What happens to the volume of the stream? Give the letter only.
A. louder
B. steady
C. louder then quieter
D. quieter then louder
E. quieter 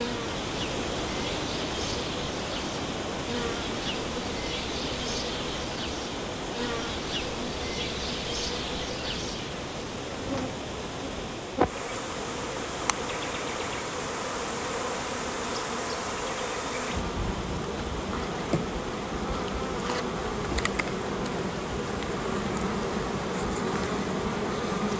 E.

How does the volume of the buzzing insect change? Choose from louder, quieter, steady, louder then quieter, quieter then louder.
louder.